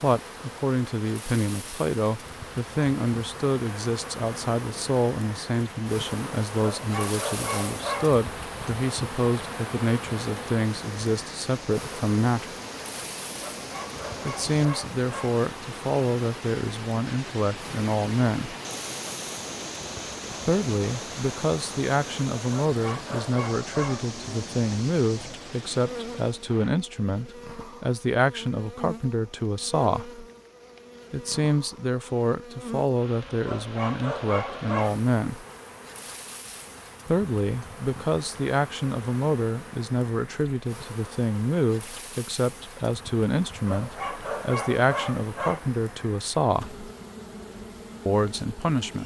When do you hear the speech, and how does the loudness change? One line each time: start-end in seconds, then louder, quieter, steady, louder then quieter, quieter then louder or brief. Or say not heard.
0.0-12.6 steady
14.2-18.6 steady
20.4-30.2 steady
31.1-35.5 steady
37.0-46.8 steady
48.0-49.0 brief.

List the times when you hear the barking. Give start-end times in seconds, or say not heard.
6.6-8.2, 13.4-15.3, 22.5-24.1, 33.5-35.0, 43.6-45.6.